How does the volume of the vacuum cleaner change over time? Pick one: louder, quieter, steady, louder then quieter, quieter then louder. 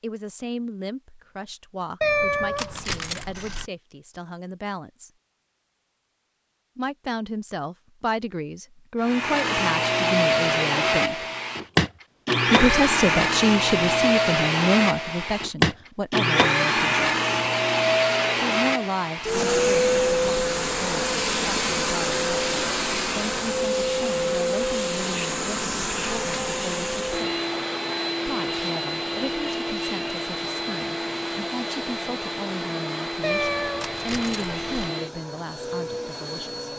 quieter.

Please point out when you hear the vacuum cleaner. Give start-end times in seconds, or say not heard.
9.0-36.7.